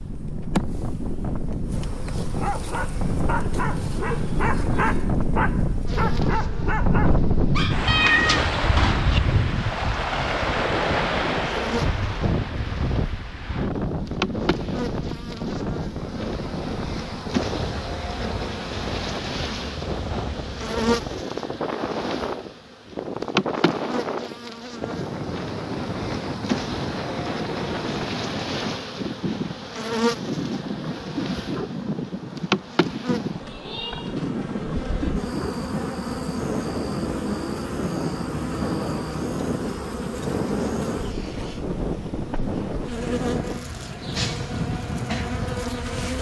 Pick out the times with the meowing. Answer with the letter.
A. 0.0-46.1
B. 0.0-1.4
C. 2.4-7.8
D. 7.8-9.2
D.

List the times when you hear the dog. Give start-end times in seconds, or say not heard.
2.4-7.8.